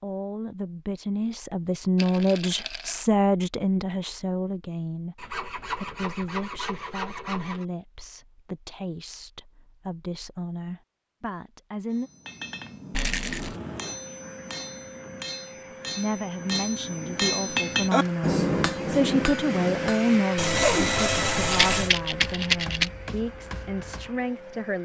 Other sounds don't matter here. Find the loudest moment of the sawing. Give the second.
21 s.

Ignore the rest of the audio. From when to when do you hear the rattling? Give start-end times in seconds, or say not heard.
1.9-3.0, 12.9-13.6, 21.5-22.9.